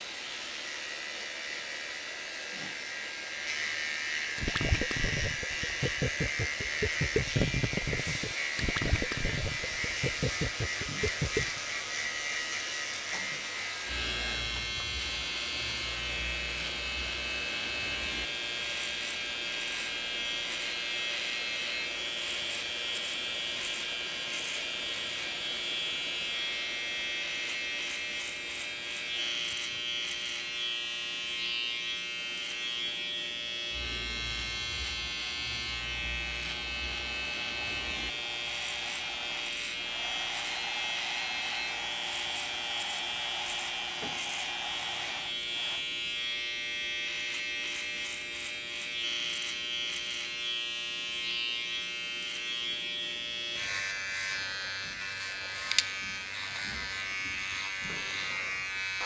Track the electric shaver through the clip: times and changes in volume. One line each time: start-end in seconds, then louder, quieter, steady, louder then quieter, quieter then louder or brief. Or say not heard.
0.0-59.0 steady.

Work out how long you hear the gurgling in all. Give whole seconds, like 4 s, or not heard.
7 s.